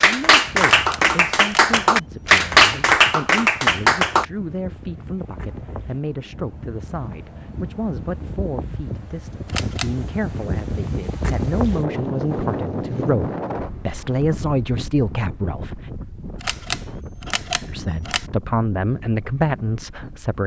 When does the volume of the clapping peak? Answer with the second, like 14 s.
2 s.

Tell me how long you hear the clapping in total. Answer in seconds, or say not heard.
4 s.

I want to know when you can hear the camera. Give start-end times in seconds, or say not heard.
0.8-2.5, 9.4-9.9, 16.4-18.2.